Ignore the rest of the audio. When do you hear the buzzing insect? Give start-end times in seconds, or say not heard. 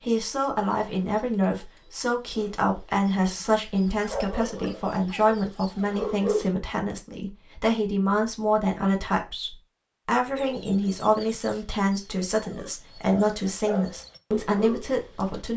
not heard.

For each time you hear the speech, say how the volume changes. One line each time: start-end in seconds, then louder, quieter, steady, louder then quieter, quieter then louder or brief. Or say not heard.
0.1-15.5 steady.